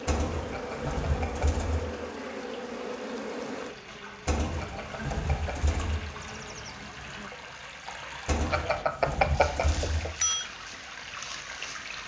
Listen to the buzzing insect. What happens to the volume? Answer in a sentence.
The loudness of the buzzing insect goes down.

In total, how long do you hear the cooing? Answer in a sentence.
You can hear the cooing for 5 seconds altogether.